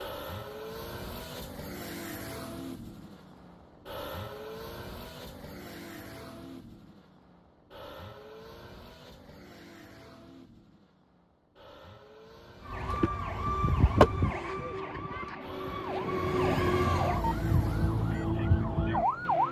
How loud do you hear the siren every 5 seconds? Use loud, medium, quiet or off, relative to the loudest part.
off, off, loud, loud.